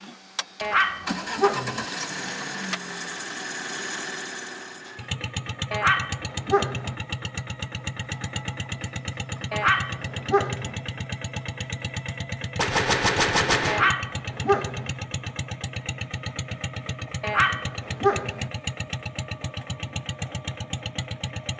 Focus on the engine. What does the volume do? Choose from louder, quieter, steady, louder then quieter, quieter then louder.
steady.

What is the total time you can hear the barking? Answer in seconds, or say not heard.
6 s.